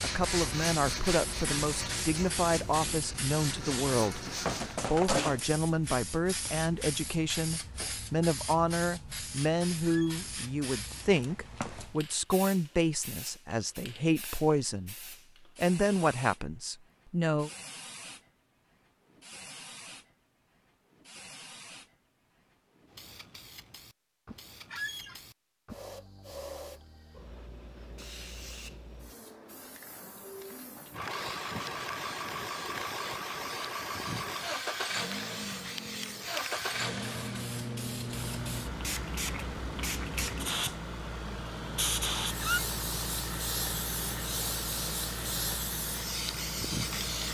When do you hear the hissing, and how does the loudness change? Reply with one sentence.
The hissing can be heard from 0.0 to 47.2 s, getting quieter then louder.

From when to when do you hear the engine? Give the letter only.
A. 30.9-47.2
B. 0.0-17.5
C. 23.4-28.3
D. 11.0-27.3
A.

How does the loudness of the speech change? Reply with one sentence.
The volume of the speech stays about the same.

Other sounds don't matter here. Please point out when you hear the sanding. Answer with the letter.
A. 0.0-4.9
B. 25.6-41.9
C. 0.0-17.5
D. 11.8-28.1
A.